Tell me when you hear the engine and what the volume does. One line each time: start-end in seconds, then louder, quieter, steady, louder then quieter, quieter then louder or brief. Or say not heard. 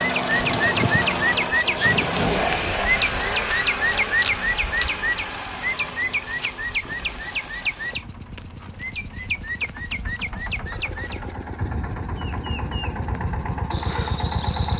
0.0-14.7 quieter then louder.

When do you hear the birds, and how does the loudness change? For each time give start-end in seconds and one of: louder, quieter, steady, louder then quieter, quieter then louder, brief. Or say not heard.
0.0-14.7 quieter.